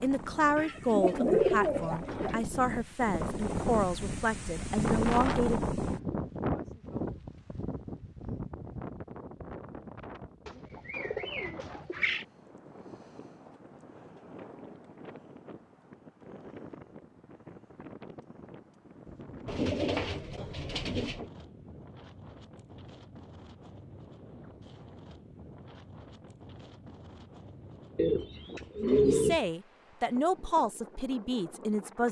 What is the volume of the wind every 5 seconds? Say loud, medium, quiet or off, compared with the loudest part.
loud, loud, quiet, quiet, quiet, quiet, quiet.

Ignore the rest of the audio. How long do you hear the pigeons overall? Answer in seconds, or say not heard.
7 s.